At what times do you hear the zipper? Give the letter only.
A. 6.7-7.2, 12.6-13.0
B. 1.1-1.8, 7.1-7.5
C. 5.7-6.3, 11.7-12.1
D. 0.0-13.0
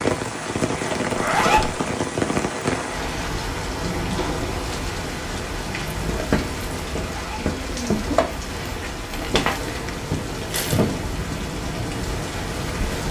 B.